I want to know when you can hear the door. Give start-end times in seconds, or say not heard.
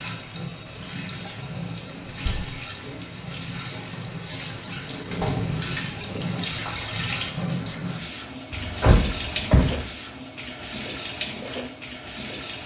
2.0-2.5, 5.1-5.7, 8.5-9.8.